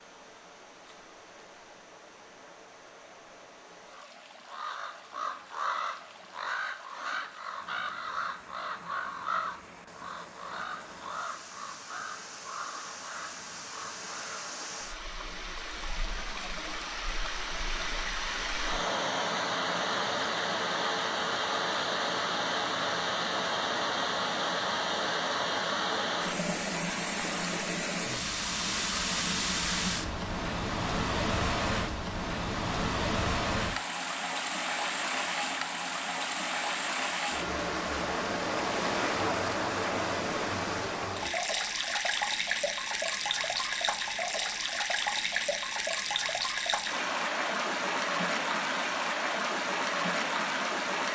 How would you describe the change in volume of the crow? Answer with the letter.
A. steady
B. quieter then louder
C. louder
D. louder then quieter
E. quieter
E.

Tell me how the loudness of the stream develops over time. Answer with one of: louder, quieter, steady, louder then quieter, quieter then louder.
louder.